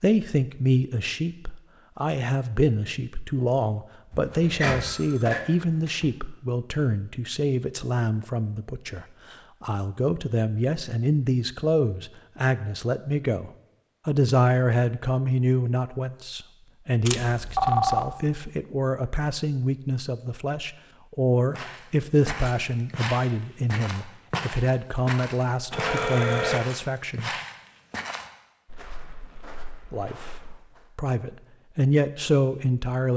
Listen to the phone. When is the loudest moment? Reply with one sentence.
The volume of the phone peaks at 18 seconds.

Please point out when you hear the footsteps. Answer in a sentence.
The footsteps can be heard from 21.5 to 30.9 s.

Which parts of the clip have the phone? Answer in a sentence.
You can hear the phone from 4.1 to 6.1 s, from 17.1 to 18.1 s and from 25.7 to 26.6 s.